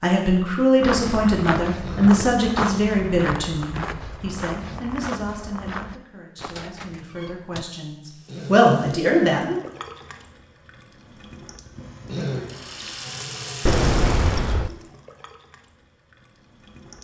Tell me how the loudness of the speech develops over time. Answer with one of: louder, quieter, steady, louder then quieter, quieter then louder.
quieter then louder.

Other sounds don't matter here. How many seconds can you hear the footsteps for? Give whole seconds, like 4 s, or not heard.
6 s.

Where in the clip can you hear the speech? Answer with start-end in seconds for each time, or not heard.
0.0-9.6.